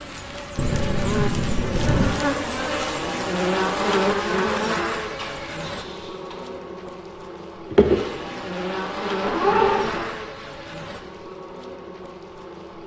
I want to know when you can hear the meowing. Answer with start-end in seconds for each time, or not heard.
0.6-2.0, 5.0-6.5, 9.2-10.1.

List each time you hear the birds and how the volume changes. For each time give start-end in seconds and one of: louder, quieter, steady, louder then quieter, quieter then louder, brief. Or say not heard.
not heard.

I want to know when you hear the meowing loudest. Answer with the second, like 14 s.
10 s.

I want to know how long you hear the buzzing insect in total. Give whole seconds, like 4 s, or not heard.
13 s.